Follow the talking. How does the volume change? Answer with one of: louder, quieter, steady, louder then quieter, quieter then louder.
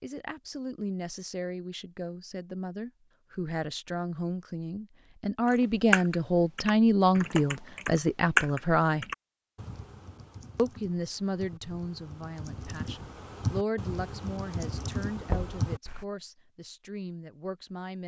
louder then quieter.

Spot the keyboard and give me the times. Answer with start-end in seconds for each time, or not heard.
5.5-16.1.